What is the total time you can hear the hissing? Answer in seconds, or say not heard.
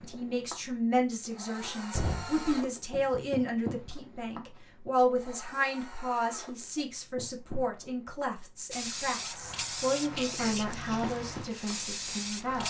4 s.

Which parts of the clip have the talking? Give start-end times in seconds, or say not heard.
0.0-12.6.